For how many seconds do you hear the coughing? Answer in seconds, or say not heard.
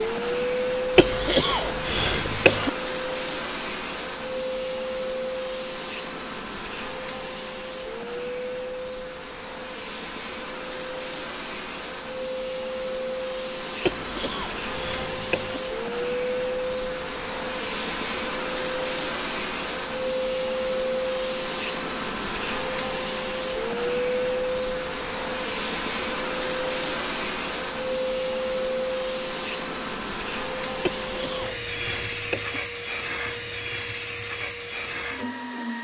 5 s.